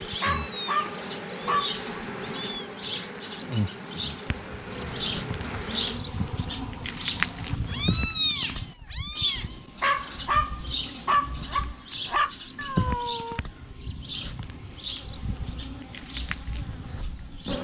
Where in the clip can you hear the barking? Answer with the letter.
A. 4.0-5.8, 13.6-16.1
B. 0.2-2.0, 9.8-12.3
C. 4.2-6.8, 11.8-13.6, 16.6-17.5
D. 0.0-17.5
B.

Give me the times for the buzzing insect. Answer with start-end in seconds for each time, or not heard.
0.0-17.5.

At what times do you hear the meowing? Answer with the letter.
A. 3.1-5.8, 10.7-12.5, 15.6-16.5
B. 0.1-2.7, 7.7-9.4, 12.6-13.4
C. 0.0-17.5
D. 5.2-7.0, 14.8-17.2
B.